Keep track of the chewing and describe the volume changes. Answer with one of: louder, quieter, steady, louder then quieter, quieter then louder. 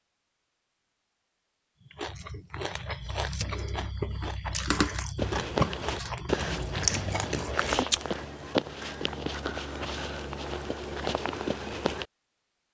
louder.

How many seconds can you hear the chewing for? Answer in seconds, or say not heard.
6 s.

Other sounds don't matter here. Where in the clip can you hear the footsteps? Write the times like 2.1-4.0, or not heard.
5.2-12.1.